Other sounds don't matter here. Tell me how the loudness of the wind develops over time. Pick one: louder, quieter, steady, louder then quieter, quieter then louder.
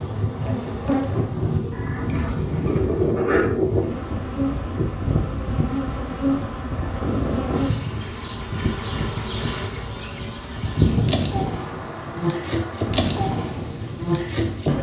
quieter.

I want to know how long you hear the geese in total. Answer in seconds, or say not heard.
2 s.